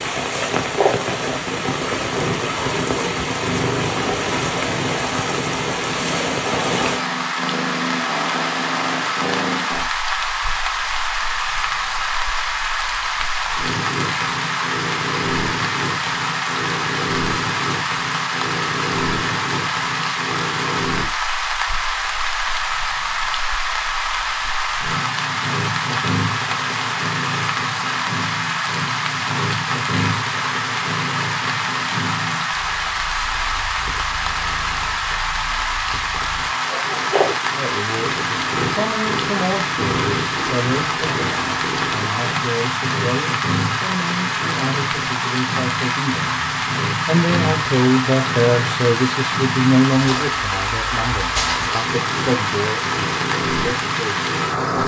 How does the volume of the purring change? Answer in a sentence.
The loudness of the purring stays about the same.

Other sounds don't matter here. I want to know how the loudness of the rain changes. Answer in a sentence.
The volume of the rain stays about the same.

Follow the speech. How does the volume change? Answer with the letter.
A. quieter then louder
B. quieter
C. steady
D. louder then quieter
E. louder
D.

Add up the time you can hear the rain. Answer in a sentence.
The rain can be heard for 55 seconds in total.